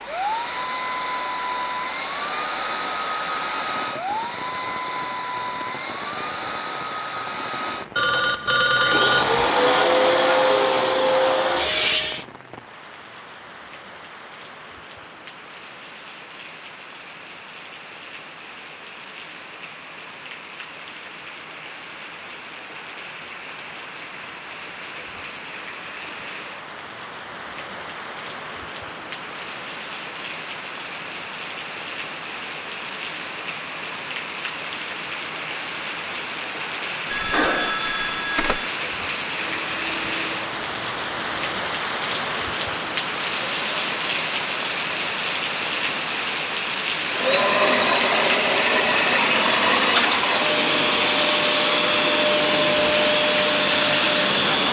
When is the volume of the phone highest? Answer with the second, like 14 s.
9 s.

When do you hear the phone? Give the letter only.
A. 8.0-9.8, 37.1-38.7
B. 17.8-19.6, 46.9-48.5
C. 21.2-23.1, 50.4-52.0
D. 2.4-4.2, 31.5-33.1
A.